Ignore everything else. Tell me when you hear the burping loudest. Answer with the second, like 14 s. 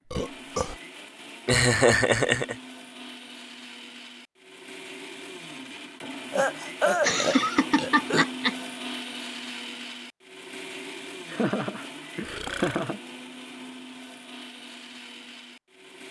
7 s.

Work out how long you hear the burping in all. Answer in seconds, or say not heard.
3 s.